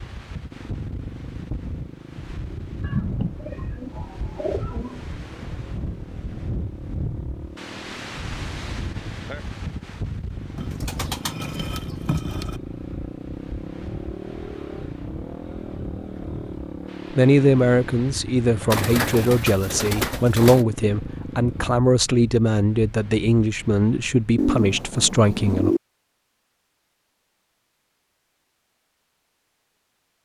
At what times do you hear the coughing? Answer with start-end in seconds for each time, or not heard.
not heard.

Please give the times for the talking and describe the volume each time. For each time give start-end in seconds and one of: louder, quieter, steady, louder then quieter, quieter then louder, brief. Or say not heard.
17.1-25.8 steady.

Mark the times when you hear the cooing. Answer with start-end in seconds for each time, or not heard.
2.8-5.0, 10.6-12.6, 18.7-20.6, 24.4-25.8.